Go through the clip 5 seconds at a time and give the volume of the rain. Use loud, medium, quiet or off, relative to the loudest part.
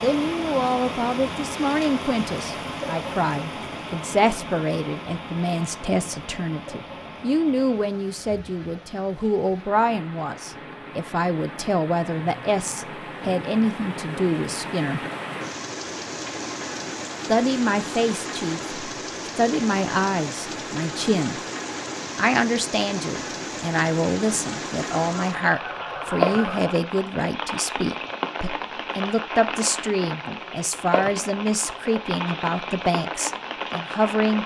loud, medium, medium, loud, loud, loud, loud.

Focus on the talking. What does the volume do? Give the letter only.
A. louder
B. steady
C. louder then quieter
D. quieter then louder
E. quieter
B.